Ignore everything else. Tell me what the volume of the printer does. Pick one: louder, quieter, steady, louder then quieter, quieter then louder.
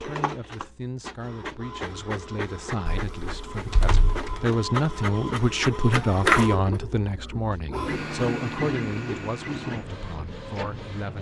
louder then quieter.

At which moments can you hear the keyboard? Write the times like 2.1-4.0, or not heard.
2.9-4.4.